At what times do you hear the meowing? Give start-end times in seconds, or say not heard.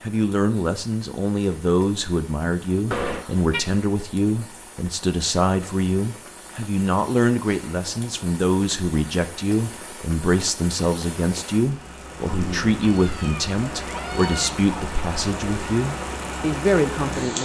2.9-3.6, 12.8-14.5.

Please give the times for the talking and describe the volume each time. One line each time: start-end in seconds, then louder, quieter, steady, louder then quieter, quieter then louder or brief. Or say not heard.
0.0-17.3 steady.